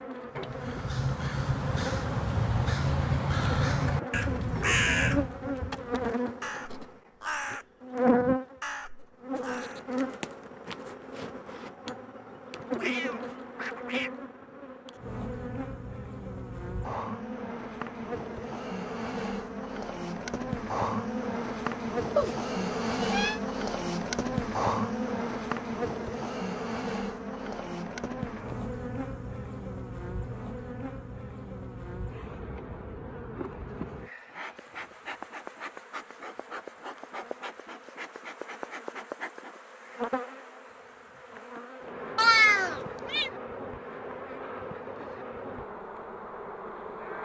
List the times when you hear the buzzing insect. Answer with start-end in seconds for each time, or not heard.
0.0-47.1.